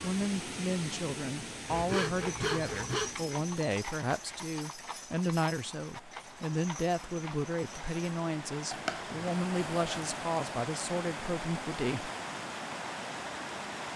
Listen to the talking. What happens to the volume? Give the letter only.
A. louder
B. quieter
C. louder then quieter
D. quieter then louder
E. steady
E.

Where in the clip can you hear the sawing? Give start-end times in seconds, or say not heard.
1.6-3.1, 8.7-10.1.